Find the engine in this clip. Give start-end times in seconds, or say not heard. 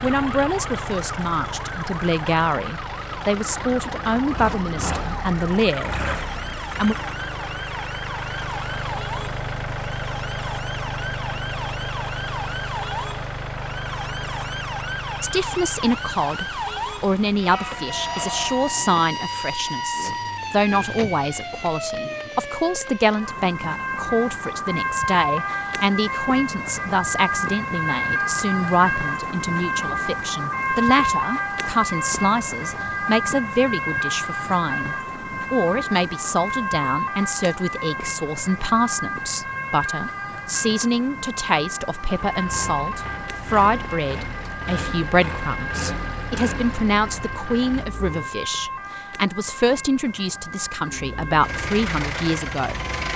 0.0-18.8, 42.0-48.3, 50.8-53.1.